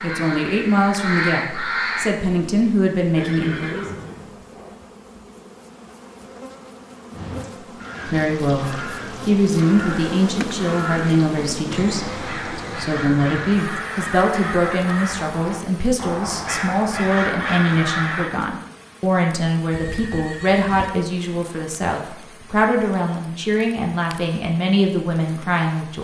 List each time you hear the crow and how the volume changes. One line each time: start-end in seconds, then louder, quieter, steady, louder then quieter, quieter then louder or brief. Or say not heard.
0.0-2.1 brief
7.1-18.3 louder.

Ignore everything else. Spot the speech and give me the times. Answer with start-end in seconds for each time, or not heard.
0.0-3.9, 8.1-25.9.